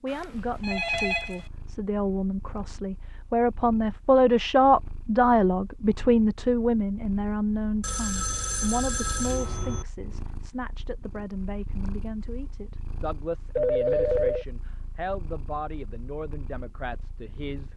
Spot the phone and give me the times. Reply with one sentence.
The phone can be heard from 0.1 to 1.4 s, from 7.8 to 9.8 s and from 13.6 to 14.4 s.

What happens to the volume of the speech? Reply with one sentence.
The loudness of the speech goes up, then down.